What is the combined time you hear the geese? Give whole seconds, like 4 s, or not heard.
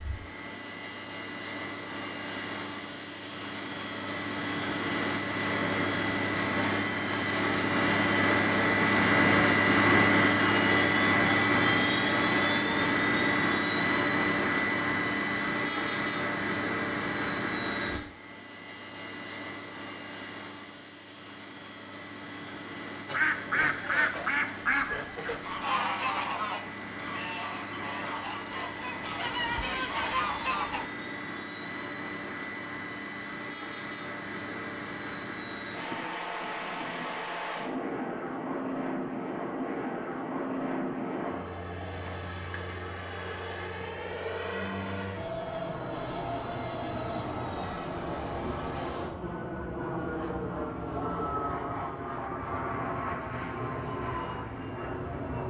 8 s.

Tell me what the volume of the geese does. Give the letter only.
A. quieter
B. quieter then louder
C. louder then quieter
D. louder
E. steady
B.